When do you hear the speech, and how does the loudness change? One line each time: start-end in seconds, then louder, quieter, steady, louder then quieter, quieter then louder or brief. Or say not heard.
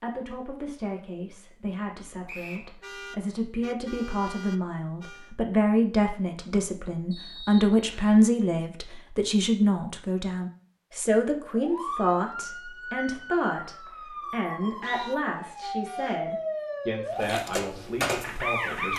0.0-18.9 louder then quieter.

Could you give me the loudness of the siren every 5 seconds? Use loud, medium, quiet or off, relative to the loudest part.
off, off, medium, loud.